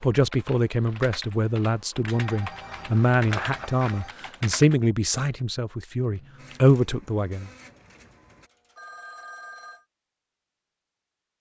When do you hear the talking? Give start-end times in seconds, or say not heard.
0.0-7.5.